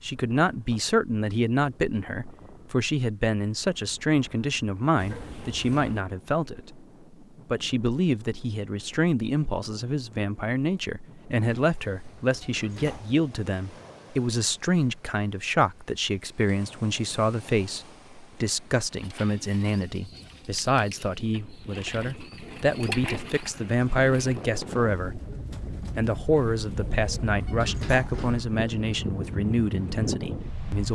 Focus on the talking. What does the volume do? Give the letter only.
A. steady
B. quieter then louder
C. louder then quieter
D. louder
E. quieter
A.